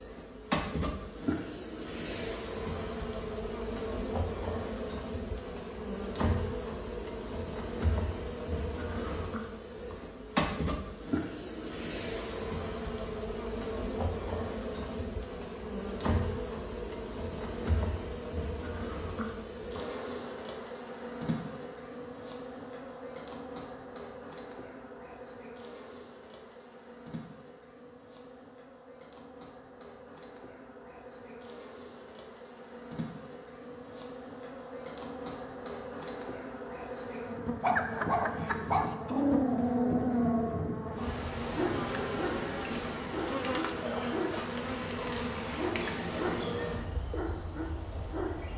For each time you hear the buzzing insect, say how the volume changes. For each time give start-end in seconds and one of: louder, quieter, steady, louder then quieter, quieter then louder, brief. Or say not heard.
0.0-48.5 quieter then louder.